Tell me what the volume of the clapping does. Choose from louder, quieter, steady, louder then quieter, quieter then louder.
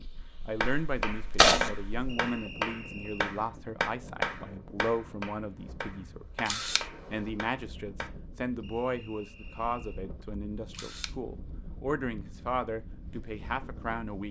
quieter.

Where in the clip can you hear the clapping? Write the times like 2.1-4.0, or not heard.
0.6-8.1.